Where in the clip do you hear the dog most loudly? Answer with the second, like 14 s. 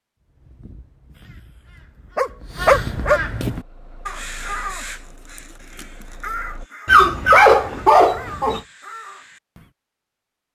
7 s.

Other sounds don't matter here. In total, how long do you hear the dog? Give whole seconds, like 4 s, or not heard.
3 s.